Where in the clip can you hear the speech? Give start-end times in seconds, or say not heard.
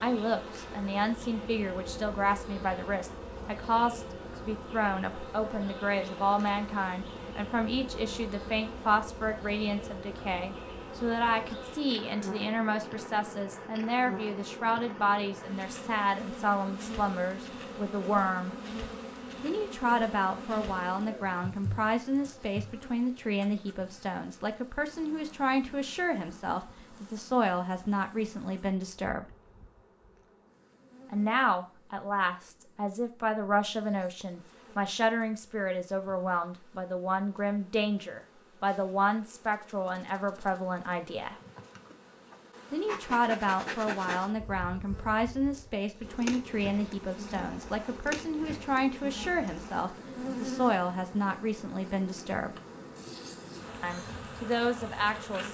0.0-18.6, 19.4-29.2, 31.1-41.4, 42.7-52.5, 53.8-55.5.